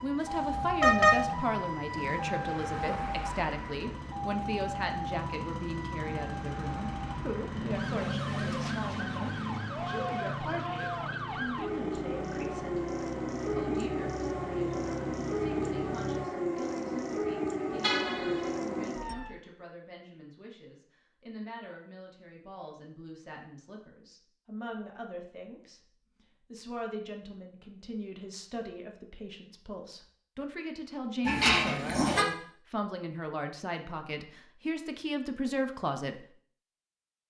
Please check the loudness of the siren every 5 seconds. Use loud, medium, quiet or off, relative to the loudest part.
loud, medium, loud, loud, off, off, off, off.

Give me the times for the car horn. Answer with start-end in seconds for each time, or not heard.
0.6-1.4, 17.8-18.5, 31.2-32.2.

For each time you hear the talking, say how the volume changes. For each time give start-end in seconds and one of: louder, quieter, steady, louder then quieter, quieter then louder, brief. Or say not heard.
0.0-12.8 quieter
13.6-36.2 louder.